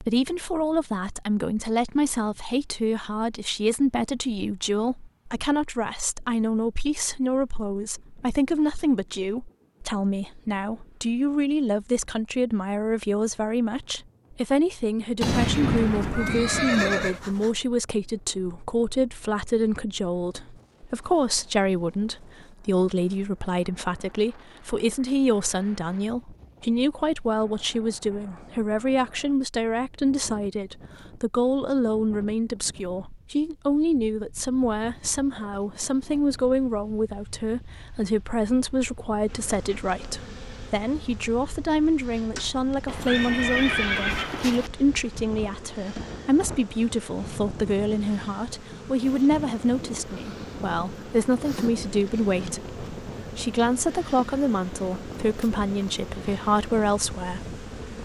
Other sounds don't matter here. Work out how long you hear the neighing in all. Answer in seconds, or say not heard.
4 s.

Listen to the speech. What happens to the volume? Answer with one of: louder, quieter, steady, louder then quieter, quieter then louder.
steady.